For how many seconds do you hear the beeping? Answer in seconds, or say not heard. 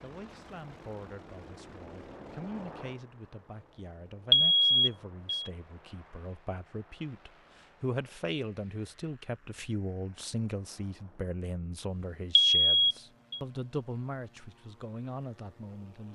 2 s.